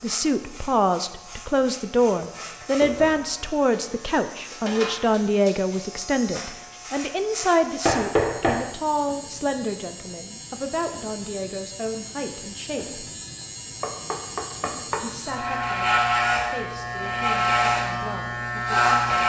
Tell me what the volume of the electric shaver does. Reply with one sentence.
The volume of the electric shaver goes up.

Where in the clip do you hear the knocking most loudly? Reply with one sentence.
The volume of the knocking peaks at 8 seconds.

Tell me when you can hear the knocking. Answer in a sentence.
The knocking can be heard from 2.8 to 3.2 s, from 7.8 to 8.6 s and from 13.8 to 15.0 s.